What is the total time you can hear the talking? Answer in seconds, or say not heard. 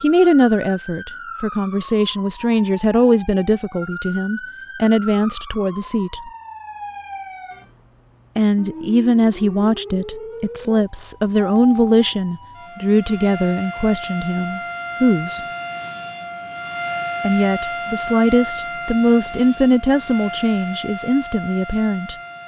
18 s.